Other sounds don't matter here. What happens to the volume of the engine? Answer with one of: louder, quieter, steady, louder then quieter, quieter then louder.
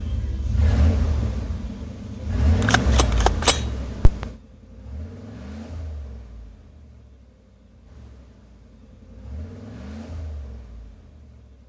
quieter then louder.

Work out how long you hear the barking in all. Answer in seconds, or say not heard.
not heard.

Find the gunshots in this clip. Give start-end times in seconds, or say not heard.
2.6-4.2.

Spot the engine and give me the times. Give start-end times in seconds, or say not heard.
0.0-11.6.